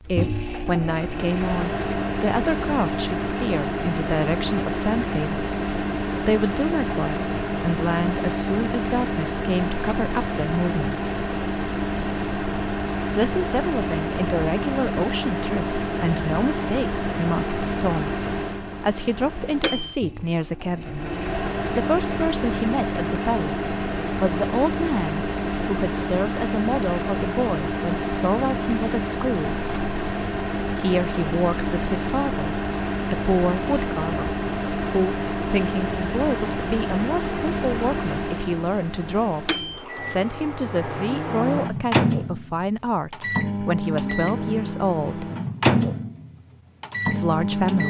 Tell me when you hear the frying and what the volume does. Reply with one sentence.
The frying can't be heard in this clip.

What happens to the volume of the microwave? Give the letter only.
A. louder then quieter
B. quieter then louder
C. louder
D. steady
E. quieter
D.